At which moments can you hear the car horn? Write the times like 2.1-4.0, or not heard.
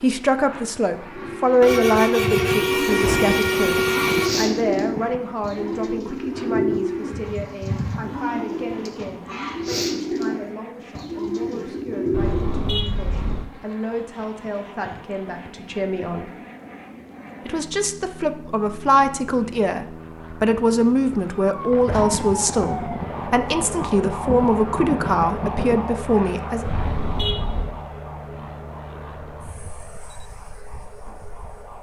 1.6-4.3, 12.1-13.5, 26.6-27.8.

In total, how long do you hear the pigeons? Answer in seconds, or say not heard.
12 s.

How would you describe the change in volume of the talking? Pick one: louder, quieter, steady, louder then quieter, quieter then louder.
quieter then louder.